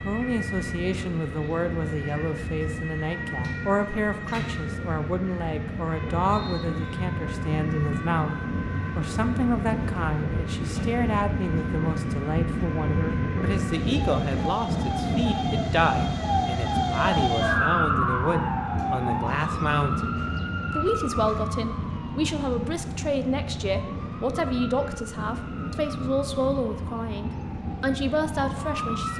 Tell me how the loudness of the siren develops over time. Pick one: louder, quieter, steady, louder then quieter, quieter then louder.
louder then quieter.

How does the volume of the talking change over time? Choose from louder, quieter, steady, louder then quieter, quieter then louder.
steady.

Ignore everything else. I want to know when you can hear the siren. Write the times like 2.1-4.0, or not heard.
0.0-29.1.